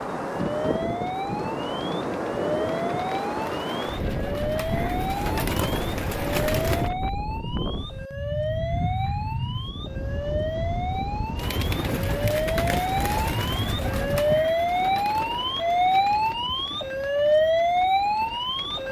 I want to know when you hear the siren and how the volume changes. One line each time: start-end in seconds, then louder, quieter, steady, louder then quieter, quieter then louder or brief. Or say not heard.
0.1-18.8 louder.